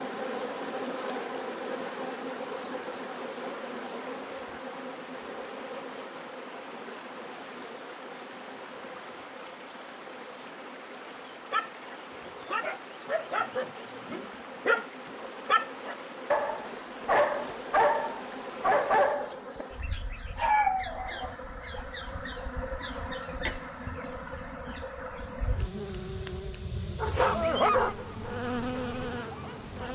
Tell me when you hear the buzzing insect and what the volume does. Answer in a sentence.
You can hear the buzzing insect from 0.0 to 29.8 s, getting quieter then louder.